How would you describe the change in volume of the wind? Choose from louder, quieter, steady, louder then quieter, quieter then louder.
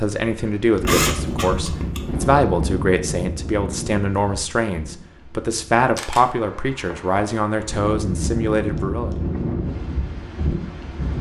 quieter then louder.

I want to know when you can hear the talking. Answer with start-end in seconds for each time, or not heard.
0.0-9.2.